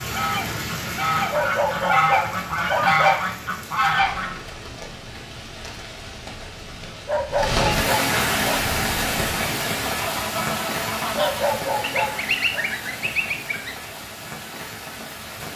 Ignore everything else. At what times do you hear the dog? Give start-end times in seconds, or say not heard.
1.3-3.2, 7.0-8.6, 11.2-12.7.